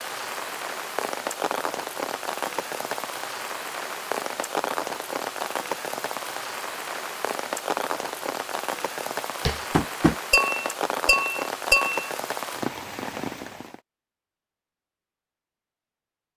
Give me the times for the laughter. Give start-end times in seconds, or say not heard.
not heard.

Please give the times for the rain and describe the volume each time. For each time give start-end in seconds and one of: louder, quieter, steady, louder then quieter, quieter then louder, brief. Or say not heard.
0.0-13.8 steady.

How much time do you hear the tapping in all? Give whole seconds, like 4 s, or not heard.
3 s.